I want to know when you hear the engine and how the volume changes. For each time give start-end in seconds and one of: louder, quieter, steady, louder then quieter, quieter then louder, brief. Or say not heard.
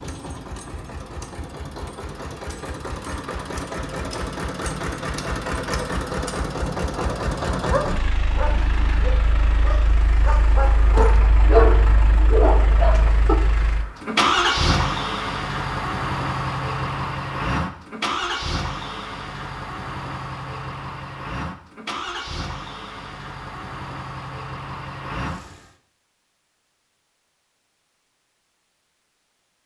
0.0-25.8 louder then quieter.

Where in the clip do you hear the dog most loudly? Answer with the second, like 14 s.
12 s.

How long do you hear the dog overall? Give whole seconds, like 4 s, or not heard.
6 s.